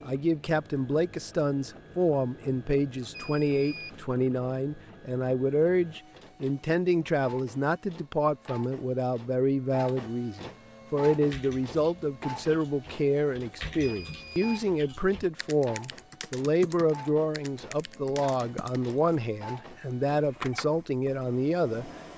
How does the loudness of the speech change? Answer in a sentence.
The volume of the speech stays about the same.